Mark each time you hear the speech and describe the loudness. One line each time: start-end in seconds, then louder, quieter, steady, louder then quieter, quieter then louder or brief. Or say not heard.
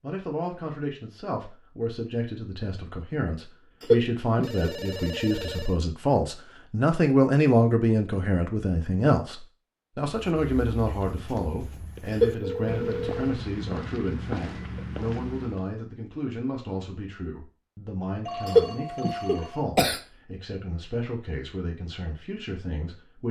0.0-23.2 louder then quieter.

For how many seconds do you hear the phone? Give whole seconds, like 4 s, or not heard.
4 s.